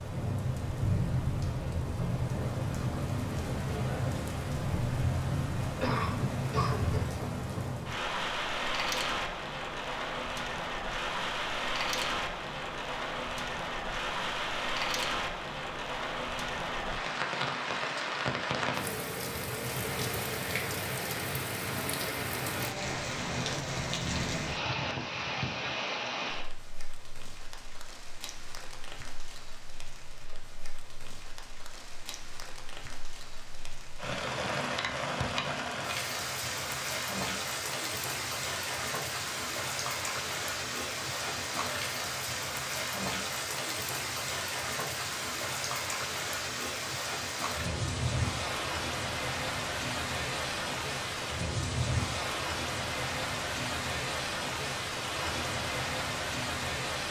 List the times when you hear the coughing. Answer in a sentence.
The coughing can be heard from 5.8 to 7.0 s.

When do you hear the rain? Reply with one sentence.
The rain can be heard from 0.0 to 57.0 s.